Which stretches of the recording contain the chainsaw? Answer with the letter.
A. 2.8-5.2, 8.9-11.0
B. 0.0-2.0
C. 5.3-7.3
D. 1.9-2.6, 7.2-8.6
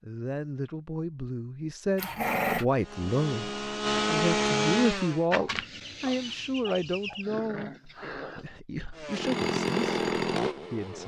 A.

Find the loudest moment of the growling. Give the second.
2 s.